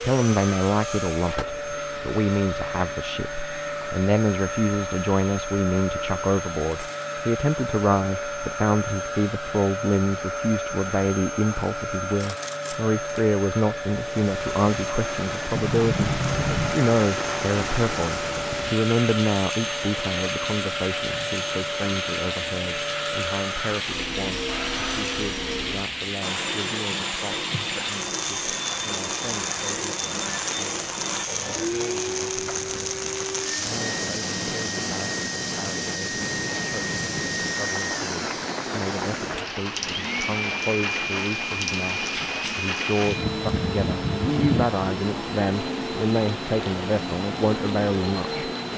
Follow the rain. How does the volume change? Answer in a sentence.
The volume of the rain stays about the same.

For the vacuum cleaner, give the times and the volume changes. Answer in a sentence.
The vacuum cleaner can be heard from 0.0 to 48.7 s, at a steady volume.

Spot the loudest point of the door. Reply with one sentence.
The loudest moment of the door is at 16 seconds.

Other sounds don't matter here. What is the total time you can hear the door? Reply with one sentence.
The door can be heard for 2 seconds in total.